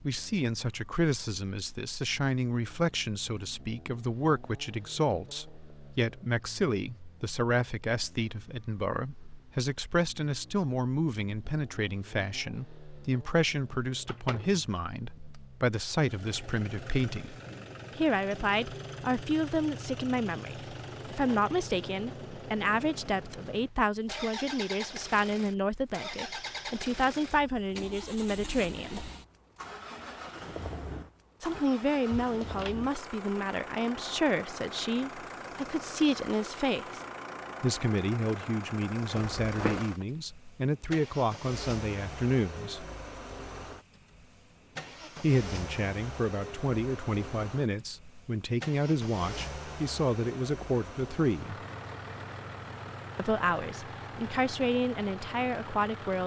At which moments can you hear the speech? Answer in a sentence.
You can hear the speech from 0.0 to 17.4 s, from 17.9 to 29.1 s, from 31.4 to 37.0 s, from 37.6 to 42.9 s, from 45.2 to 51.5 s and from 53.1 to 56.2 s.